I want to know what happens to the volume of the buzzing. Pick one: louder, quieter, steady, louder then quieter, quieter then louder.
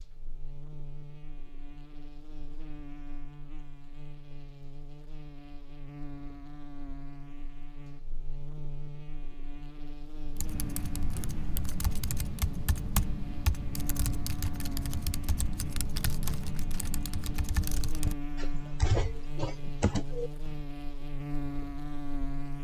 louder.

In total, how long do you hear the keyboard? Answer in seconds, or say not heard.
10 s.